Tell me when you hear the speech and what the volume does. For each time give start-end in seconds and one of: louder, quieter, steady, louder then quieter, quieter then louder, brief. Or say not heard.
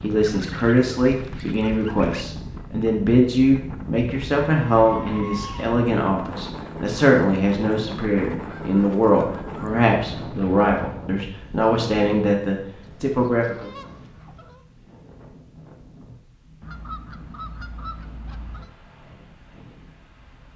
0.0-13.7 steady.